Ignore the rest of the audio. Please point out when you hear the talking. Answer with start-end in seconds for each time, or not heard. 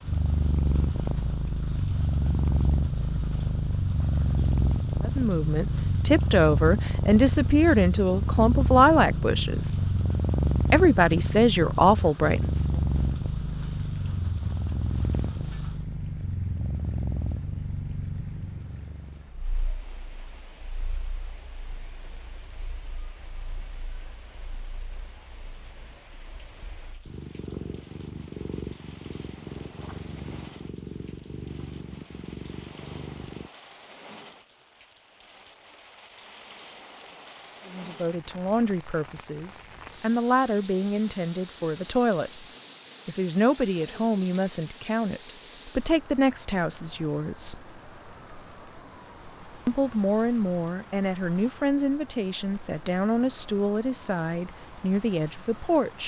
5.0-9.8, 10.7-12.8, 37.6-42.5, 43.0-47.6, 49.6-56.0.